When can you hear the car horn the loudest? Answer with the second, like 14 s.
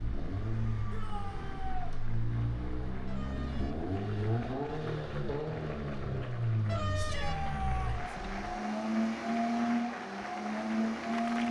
7 s.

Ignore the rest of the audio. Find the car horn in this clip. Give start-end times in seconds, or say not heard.
3.0-3.9, 6.7-8.6.